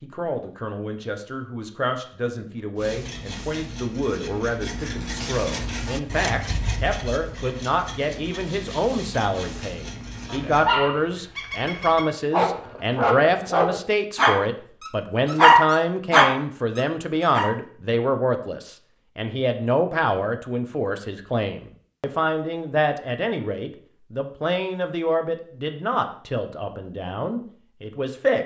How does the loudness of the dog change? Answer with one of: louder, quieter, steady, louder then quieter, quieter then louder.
louder.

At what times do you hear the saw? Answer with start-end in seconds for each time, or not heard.
2.8-10.8.